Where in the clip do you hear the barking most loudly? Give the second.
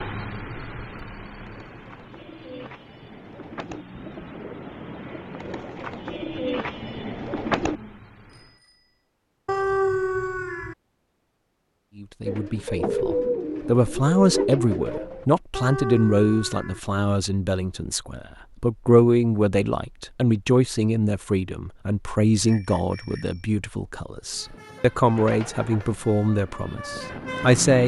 10 s.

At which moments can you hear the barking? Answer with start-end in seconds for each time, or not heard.
9.4-10.8, 15.6-16.8.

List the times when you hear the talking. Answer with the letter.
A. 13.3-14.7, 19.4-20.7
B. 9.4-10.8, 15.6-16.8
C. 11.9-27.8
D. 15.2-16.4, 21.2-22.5
C.